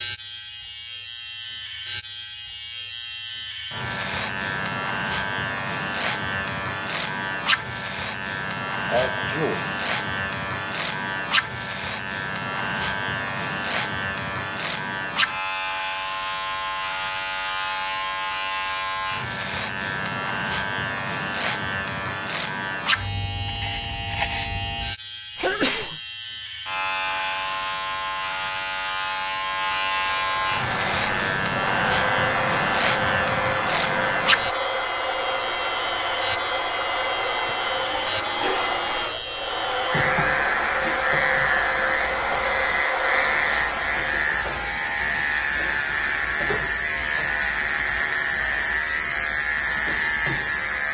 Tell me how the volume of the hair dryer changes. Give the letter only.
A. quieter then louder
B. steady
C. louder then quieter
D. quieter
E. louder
B.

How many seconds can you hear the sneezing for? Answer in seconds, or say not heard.
3 s.